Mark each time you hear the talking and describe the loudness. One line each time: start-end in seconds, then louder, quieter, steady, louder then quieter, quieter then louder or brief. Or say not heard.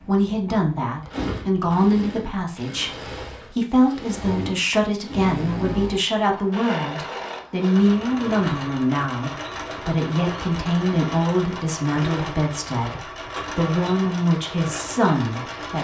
0.0-15.7 steady.